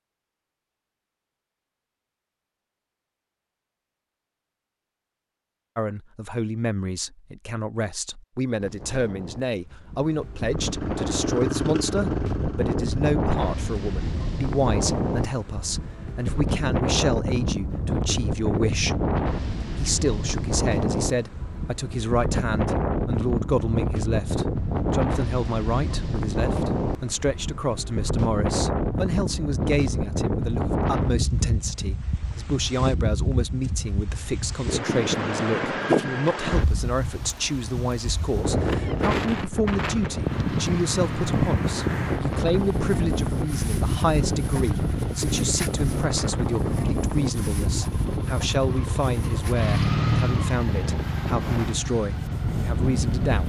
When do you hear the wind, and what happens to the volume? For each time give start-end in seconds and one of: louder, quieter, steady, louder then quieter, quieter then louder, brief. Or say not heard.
8.6-53.4 steady.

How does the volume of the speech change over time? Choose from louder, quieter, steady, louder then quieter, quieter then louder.
steady.